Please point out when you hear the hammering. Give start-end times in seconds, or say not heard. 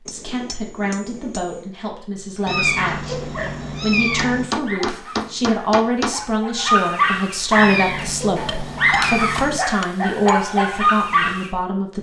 0.1-1.8, 4.2-6.2, 8.4-10.3.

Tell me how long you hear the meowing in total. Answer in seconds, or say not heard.
4 s.